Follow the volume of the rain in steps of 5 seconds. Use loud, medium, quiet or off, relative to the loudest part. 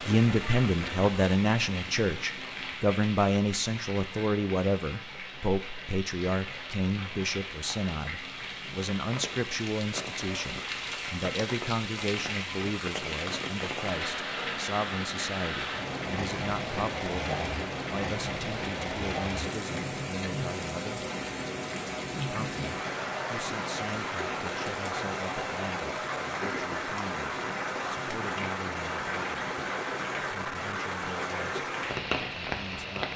medium, medium, loud, loud, loud, loud, loud.